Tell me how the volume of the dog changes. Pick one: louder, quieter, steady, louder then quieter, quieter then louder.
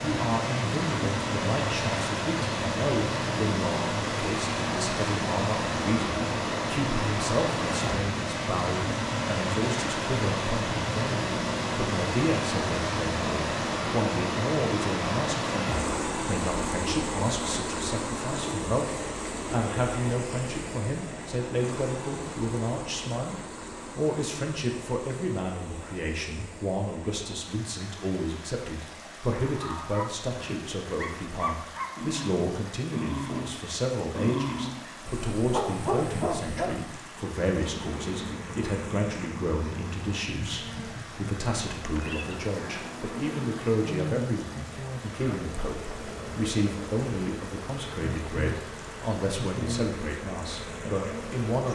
louder.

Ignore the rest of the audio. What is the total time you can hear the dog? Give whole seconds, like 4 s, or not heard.
8 s.